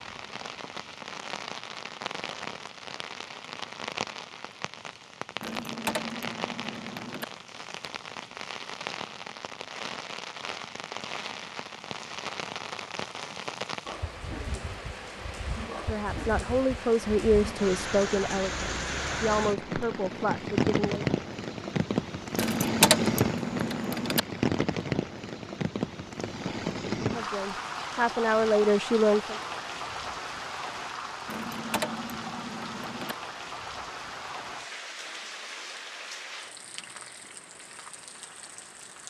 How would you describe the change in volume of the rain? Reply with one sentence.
The volume of the rain goes up, then down.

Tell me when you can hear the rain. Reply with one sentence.
You can hear the rain from 0.0 to 39.0 s.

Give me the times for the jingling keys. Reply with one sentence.
The jingling keys can be heard from 5.4 to 7.2 s, from 22.4 to 24.2 s and from 31.2 to 33.1 s.